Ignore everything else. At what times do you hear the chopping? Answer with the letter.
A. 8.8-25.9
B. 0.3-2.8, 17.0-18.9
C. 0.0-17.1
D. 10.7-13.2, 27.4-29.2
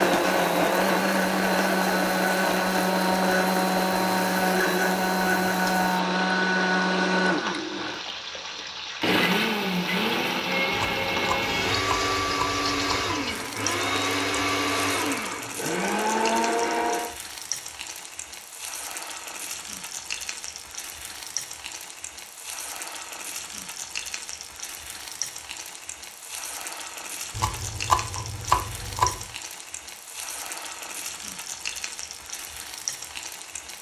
D.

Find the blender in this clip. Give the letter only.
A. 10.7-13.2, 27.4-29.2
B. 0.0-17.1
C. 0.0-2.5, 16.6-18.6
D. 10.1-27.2
B.